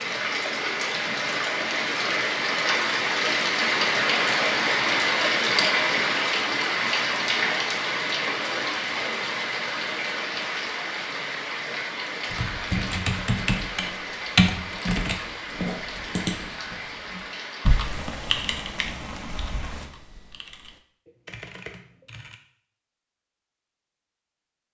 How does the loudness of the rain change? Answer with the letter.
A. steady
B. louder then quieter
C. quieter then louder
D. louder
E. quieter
E.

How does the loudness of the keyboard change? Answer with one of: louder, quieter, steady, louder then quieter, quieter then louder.
quieter.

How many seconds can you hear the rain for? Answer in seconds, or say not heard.
20 s.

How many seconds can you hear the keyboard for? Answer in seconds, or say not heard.
10 s.